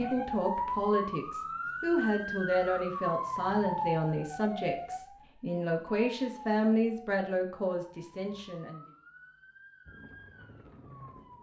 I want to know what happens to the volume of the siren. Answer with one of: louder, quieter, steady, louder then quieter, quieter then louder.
quieter.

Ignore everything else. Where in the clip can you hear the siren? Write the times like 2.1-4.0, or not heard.
0.0-11.3.